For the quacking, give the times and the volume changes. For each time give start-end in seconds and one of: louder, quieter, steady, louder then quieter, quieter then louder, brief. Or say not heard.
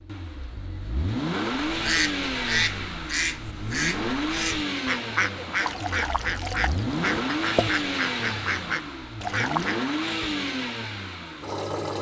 1.6-9.8 steady.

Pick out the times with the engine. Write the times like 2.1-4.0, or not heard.
0.0-11.9.